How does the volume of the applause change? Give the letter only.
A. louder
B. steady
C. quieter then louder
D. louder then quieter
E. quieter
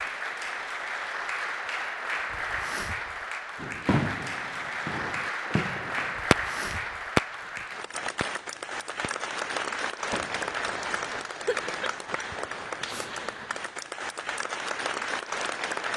B.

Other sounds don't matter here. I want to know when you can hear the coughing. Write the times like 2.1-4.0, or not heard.
11.4-13.4.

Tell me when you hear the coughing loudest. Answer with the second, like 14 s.
12 s.